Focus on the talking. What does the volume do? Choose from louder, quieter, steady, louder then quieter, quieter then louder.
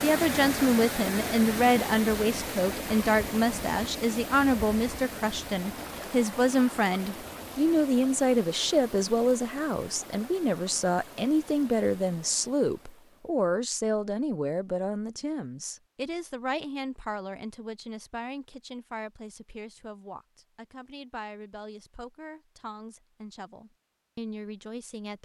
quieter.